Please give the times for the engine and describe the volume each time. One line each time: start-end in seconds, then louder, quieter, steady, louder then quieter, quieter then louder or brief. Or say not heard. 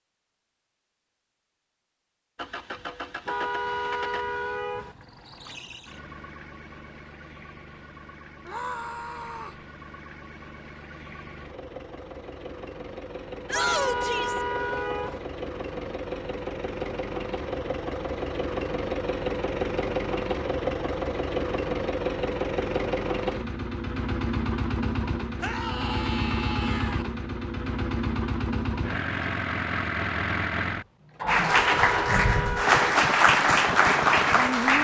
2.4-34.8 louder.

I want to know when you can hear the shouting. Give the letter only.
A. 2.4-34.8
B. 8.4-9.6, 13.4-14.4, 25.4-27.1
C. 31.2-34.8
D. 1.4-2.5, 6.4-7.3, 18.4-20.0
B.